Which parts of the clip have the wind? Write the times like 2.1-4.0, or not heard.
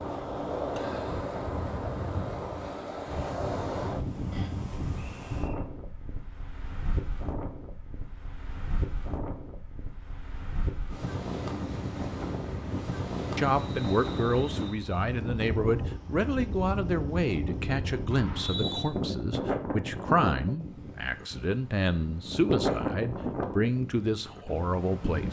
0.0-25.2.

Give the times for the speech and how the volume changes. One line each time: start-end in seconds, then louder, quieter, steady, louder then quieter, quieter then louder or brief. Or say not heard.
13.3-25.2 steady.